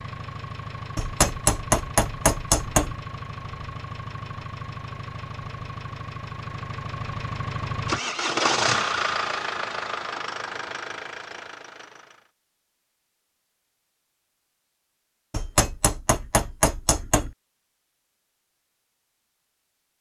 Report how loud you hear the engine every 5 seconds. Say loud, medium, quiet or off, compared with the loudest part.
medium, loud, medium, off.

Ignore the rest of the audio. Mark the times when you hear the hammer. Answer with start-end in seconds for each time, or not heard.
0.9-3.0, 15.3-17.3.